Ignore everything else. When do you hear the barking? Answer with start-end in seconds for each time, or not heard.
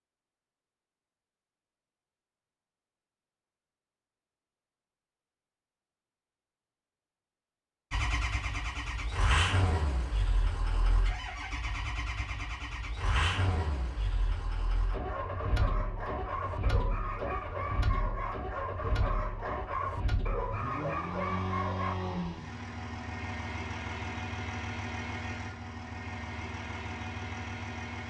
14.9-21.9.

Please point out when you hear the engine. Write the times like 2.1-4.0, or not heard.
7.9-28.0.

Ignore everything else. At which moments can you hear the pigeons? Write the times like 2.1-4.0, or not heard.
not heard.